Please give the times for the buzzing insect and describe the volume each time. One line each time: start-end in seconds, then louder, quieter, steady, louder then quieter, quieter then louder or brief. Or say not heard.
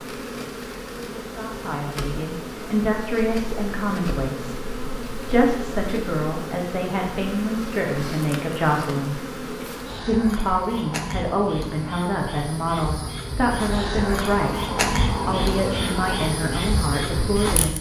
0.0-17.7 louder.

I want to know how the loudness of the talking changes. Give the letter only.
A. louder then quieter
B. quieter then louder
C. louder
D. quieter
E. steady
E.